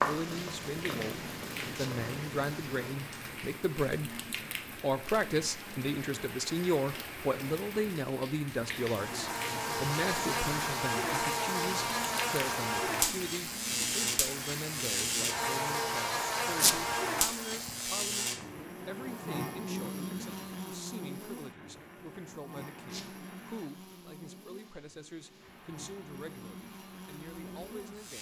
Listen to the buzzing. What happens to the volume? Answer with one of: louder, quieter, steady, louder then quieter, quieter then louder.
quieter.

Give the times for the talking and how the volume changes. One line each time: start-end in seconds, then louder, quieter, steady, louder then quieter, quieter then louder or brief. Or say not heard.
0.1-28.1 quieter.